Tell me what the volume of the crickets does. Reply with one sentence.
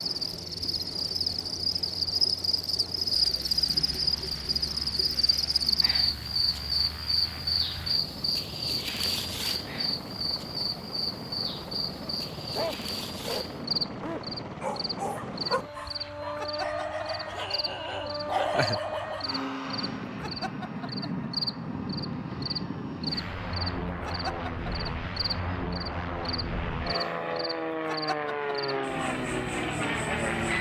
The loudness of the crickets goes down.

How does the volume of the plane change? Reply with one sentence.
The volume of the plane goes up.